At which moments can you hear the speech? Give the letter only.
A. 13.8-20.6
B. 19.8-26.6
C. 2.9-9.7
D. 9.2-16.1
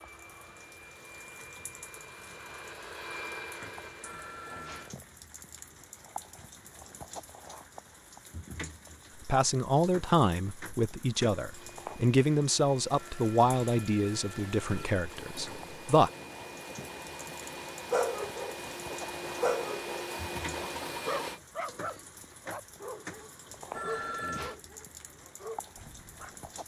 D.